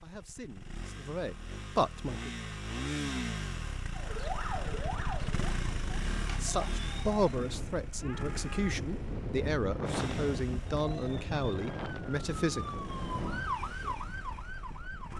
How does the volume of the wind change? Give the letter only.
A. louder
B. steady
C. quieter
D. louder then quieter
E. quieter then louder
D.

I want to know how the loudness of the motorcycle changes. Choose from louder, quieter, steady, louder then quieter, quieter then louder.
quieter.